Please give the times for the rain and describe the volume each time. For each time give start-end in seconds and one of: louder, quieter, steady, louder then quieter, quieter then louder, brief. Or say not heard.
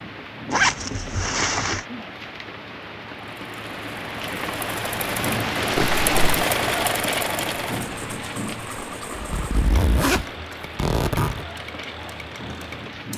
0.0-13.1 louder then quieter.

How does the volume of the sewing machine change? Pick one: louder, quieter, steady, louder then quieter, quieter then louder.
louder then quieter.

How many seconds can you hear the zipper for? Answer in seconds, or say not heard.
4 s.